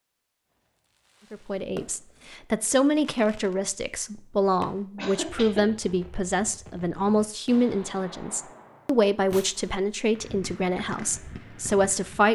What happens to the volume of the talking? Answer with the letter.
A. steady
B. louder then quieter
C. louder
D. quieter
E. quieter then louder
A.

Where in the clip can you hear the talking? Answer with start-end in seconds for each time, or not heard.
1.3-12.2.